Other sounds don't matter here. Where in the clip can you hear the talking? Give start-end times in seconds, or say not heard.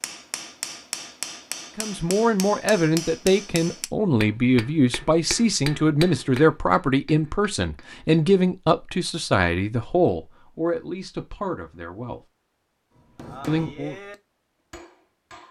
1.8-12.2, 13.4-13.9.